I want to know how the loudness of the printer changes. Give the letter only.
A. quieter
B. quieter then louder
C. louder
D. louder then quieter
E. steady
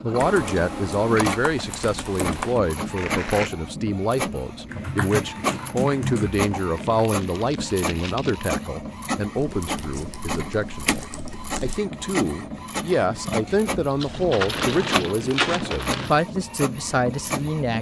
E.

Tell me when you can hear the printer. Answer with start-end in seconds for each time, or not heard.
0.0-17.7.